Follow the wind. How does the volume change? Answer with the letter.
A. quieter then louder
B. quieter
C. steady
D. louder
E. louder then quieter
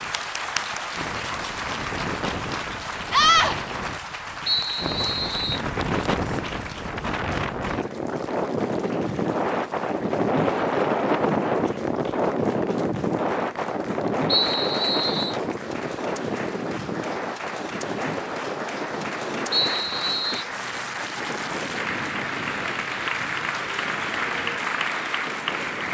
E.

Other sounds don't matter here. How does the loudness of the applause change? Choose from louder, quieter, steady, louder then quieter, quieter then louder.
quieter then louder.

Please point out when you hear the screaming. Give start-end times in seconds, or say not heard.
3.1-3.5.